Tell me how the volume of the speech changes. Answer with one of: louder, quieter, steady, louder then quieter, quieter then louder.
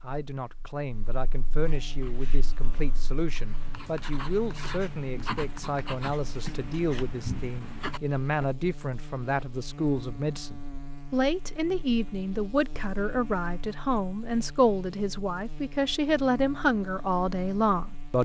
louder.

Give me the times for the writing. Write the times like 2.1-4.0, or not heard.
1.9-8.5.